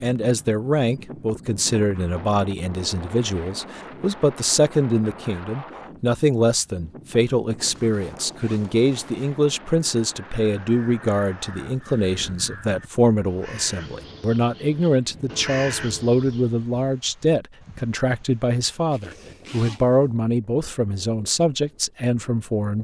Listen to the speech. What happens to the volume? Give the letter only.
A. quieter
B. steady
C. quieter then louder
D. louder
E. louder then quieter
B.